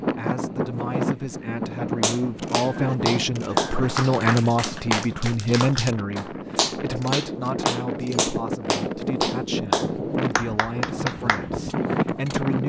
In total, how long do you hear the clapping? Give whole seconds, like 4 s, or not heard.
10 s.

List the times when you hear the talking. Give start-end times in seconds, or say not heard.
0.1-12.6.